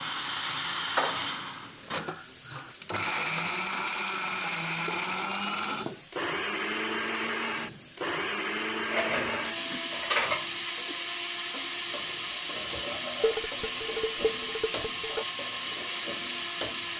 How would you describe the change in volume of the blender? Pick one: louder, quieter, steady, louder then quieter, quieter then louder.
steady.